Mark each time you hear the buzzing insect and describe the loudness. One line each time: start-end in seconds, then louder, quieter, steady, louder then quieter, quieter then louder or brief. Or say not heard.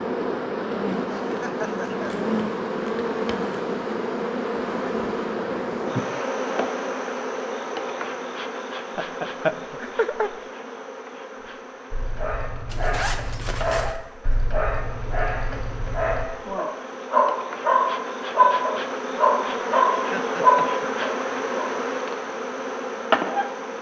0.0-23.7 quieter then louder.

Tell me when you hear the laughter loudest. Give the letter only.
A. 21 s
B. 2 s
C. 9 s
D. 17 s
C.